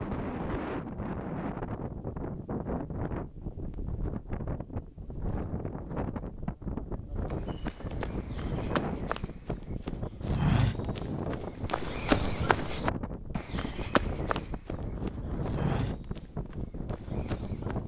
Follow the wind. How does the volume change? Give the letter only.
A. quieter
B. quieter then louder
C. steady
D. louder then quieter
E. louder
C.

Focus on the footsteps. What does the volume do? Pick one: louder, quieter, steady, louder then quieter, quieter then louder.
louder then quieter.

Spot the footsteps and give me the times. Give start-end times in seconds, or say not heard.
7.2-17.8.